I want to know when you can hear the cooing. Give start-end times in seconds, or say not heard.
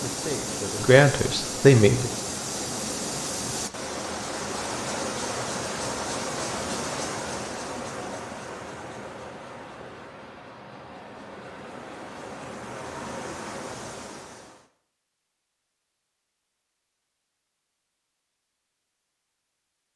not heard.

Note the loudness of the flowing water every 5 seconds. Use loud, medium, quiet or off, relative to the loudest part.
loud, loud, medium, off.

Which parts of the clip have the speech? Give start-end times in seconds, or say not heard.
0.1-2.1.